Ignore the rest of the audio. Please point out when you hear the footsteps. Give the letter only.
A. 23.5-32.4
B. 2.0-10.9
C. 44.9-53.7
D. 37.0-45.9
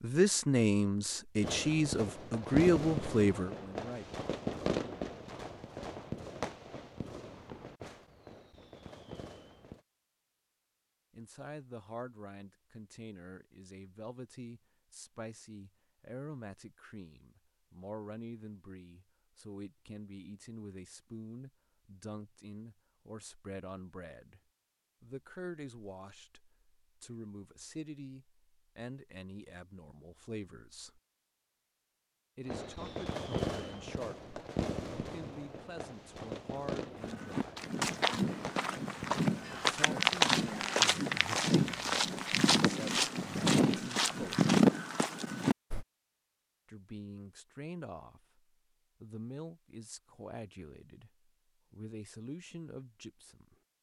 D.